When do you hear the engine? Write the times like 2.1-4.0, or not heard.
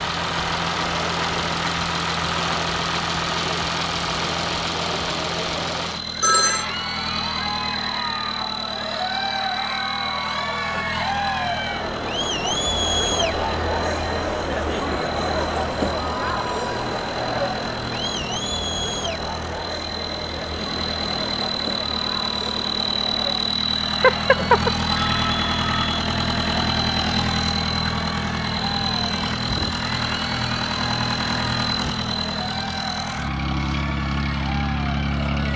0.0-35.5.